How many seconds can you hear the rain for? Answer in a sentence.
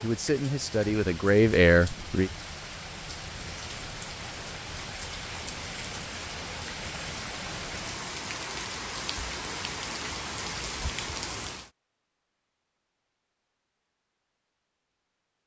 You can hear the rain for 12 seconds altogether.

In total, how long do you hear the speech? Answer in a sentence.
You can hear the speech for 2 seconds altogether.